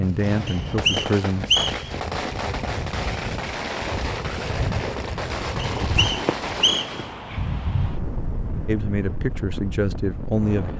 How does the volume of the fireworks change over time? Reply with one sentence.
The volume of the fireworks stays about the same.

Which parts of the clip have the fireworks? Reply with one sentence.
You can hear the fireworks from 0.0 to 7.2 s.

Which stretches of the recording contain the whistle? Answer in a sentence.
You can hear the whistle from 0.5 to 1.9 s and from 5.8 to 7.0 s.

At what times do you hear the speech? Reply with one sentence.
The speech can be heard from 0.0 to 1.6 s and from 8.7 to 10.7 s.